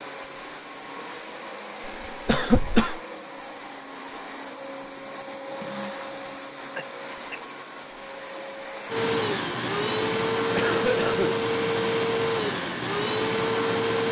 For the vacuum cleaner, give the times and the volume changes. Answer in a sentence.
You can hear the vacuum cleaner from 0.0 to 14.0 s, getting louder.